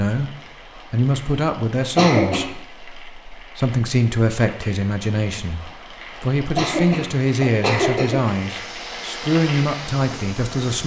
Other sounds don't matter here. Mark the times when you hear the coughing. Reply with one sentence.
The coughing can be heard from 1.8 to 2.5 s and from 6.5 to 8.3 s.